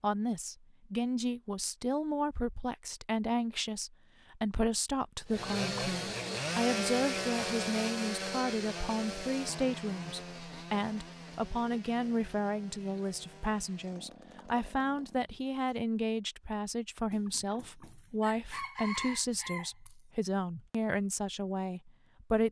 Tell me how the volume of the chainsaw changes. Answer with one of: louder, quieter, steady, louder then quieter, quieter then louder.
quieter.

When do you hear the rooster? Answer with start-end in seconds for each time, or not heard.
17.1-19.9.